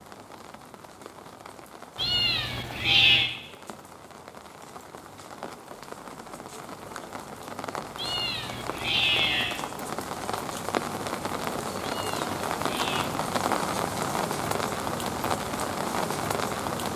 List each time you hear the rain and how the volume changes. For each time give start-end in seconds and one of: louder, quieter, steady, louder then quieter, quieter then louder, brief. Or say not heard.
0.0-16.9 louder.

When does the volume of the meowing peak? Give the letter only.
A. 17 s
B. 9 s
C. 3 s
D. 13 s
C.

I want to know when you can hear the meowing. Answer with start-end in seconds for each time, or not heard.
1.9-3.3, 8.0-9.6, 11.8-13.1.